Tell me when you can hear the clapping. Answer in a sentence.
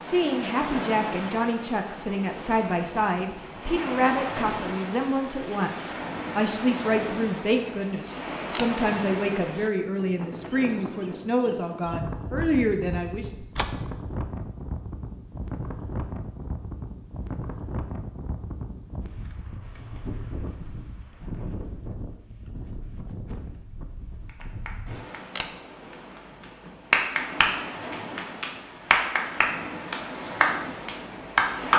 You can hear the clapping from 24.2 to 31.7 s.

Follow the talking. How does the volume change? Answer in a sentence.
The loudness of the talking stays about the same.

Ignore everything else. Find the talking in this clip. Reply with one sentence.
You can hear the talking from 0.0 to 13.2 s.